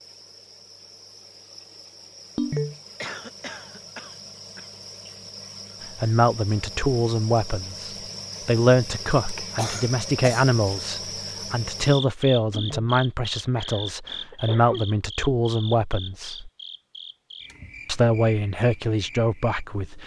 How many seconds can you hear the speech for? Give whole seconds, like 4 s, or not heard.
13 s.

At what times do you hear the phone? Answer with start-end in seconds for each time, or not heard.
2.4-2.8, 12.5-12.9.